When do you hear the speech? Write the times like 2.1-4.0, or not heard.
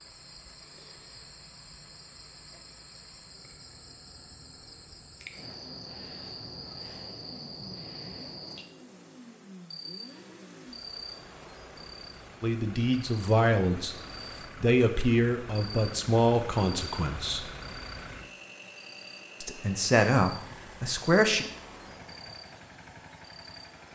12.4-13.9, 14.6-17.4, 19.4-21.4.